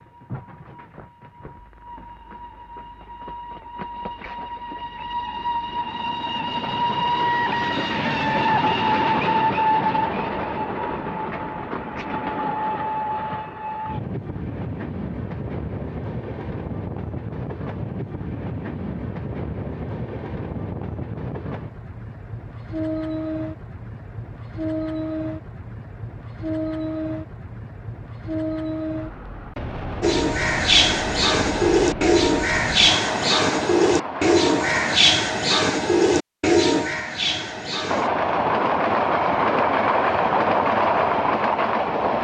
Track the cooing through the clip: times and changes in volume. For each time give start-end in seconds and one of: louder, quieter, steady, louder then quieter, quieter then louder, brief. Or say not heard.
30.0-38.1 steady.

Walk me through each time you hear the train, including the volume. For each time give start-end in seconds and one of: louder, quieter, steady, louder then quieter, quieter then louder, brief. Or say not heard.
0.0-35.0 louder then quieter
37.9-42.1 steady.